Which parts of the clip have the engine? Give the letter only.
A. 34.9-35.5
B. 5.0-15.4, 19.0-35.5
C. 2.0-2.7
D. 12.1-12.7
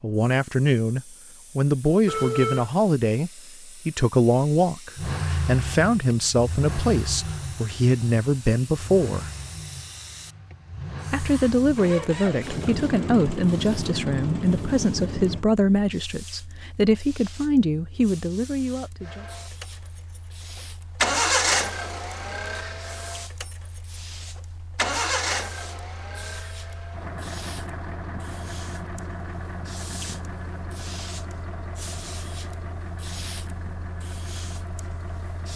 B.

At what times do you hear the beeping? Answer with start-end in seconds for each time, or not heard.
2.0-2.7.